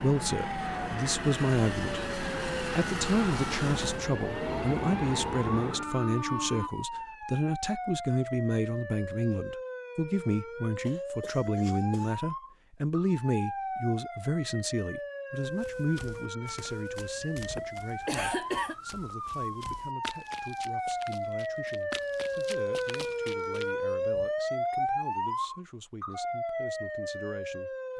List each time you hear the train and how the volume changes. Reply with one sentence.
The train can be heard from 0.0 to 6.7 s, at a steady volume.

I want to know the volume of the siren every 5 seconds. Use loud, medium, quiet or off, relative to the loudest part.
medium, medium, medium, medium, loud, loud.